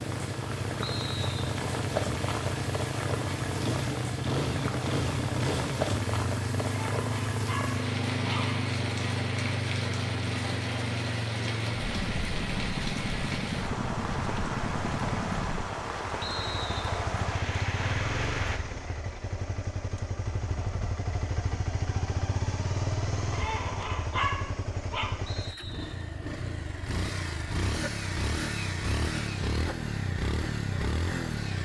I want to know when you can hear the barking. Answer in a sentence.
You can hear the barking from 6.6 to 8.6 s and from 23.3 to 25.1 s.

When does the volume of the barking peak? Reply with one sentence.
The loudest moment of the barking is at 24 seconds.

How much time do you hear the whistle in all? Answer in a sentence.
The whistle can be heard for 2 seconds in total.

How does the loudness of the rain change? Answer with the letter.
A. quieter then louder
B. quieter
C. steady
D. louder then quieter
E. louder
C.